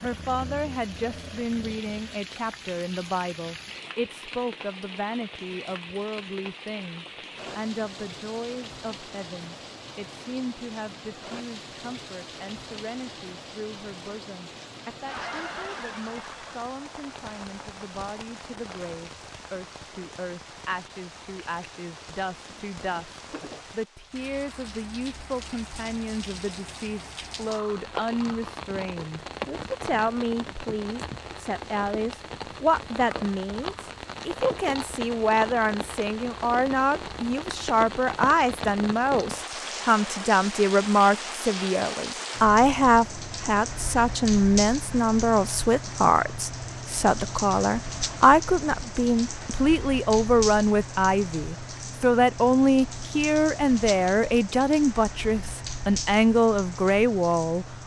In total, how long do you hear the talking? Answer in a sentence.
The talking can be heard for 58 seconds in total.